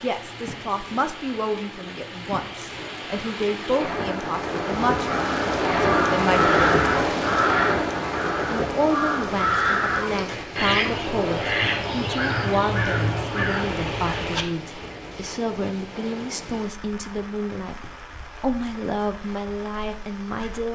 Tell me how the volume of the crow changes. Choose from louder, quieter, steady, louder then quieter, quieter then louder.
steady.